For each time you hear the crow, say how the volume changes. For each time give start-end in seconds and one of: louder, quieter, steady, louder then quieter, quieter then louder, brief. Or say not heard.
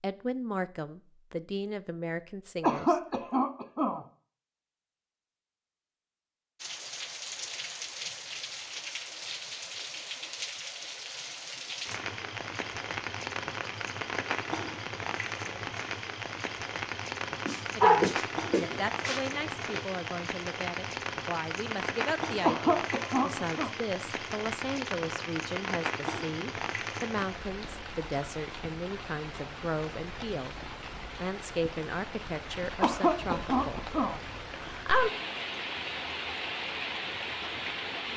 not heard.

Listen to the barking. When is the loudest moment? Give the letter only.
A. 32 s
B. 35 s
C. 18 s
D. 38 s
C.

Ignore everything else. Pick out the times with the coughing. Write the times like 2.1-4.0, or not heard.
2.6-4.0, 22.4-23.7, 32.8-34.2.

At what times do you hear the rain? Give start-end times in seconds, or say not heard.
6.5-38.1.